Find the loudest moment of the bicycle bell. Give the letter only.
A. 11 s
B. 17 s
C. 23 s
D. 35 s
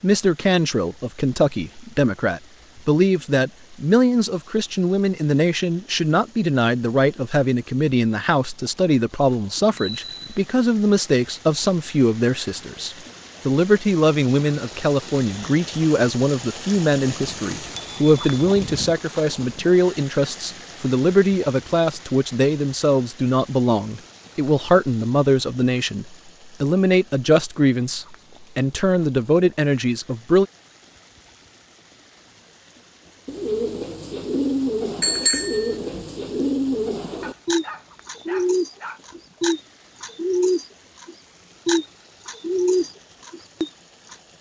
D.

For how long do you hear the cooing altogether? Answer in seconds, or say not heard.
11 s.